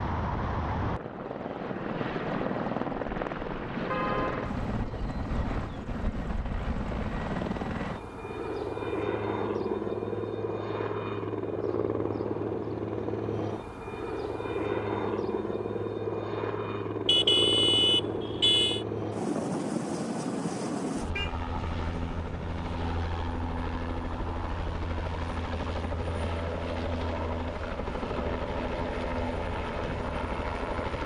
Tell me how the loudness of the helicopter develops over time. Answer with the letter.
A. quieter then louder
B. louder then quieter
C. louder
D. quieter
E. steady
E.